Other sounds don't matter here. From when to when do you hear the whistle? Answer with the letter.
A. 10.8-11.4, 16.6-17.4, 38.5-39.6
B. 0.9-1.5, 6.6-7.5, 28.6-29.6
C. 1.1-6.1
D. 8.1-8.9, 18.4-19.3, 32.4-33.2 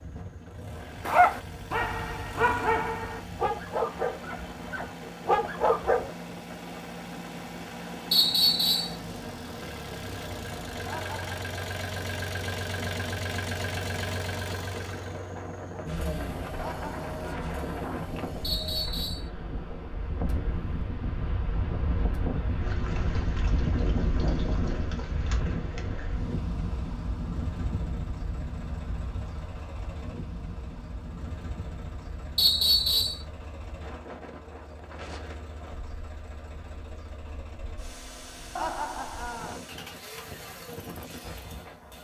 D.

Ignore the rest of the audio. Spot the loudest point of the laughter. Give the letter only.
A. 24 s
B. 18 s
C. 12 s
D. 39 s
D.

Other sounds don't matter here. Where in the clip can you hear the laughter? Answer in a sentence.
The laughter can be heard from 10.8 to 11.4 s, from 16.6 to 17.4 s and from 38.5 to 39.6 s.